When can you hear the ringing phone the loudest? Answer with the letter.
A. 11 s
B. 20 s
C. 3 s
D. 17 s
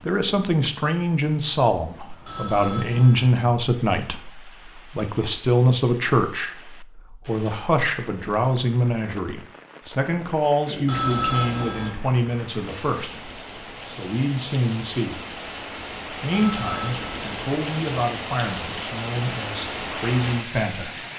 A.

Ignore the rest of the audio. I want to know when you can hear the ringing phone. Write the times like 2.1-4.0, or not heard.
2.2-3.3, 10.8-11.9, 16.3-17.4.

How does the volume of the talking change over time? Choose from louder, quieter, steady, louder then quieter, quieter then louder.
quieter.